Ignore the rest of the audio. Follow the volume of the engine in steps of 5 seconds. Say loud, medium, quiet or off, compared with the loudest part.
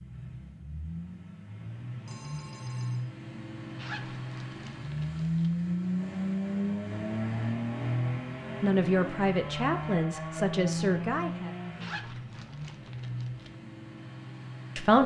medium, loud, medium.